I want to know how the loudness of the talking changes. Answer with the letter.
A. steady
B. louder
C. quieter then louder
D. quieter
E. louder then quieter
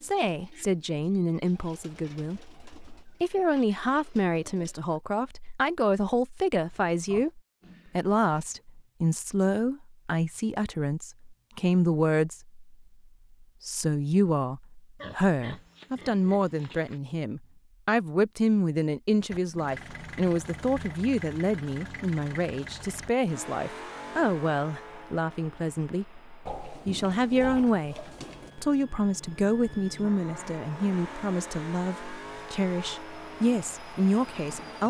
A.